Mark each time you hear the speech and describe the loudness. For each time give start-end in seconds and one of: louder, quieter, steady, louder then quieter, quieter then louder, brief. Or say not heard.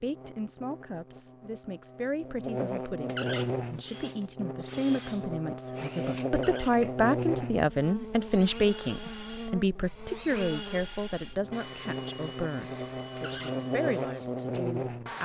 0.0-15.2 louder then quieter.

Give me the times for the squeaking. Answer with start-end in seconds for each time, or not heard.
3.0-3.5, 6.3-6.8, 13.2-13.6.